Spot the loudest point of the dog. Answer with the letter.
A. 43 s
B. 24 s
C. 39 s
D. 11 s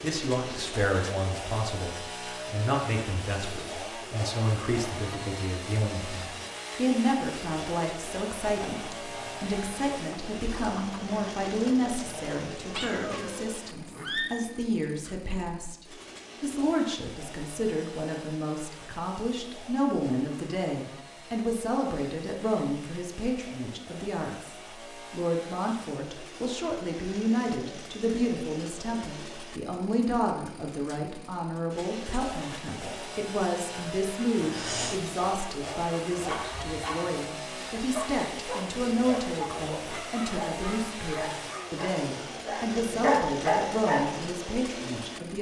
A.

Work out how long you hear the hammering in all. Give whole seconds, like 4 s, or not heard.
not heard.